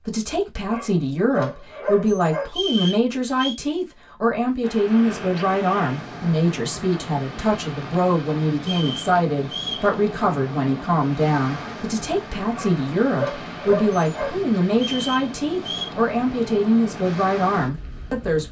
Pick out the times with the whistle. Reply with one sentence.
You can hear the whistle from 2.5 to 3.6 s, from 8.6 to 9.9 s and from 14.7 to 15.9 s.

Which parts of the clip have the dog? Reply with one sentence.
The dog can be heard from 0.7 to 2.5 s and from 12.5 to 14.3 s.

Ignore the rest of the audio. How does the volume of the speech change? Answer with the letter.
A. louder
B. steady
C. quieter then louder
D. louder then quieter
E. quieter
B.